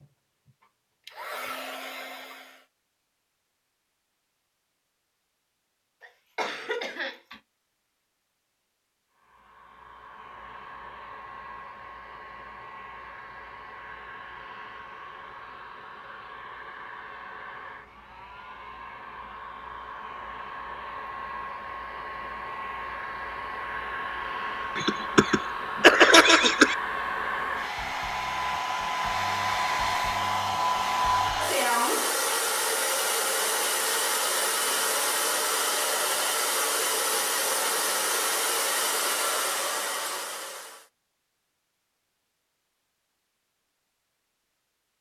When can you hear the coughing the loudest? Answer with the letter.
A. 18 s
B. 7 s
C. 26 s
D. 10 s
C.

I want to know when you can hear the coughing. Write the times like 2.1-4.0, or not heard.
6.0-7.4, 24.8-26.8.